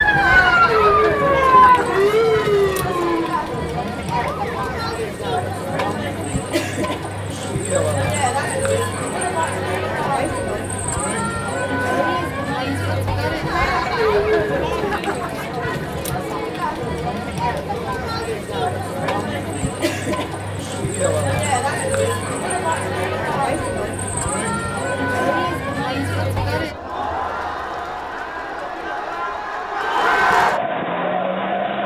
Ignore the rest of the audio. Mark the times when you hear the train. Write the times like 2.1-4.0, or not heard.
not heard.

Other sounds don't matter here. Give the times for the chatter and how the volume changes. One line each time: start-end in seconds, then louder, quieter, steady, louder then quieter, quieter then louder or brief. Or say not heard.
0.0-31.8 steady.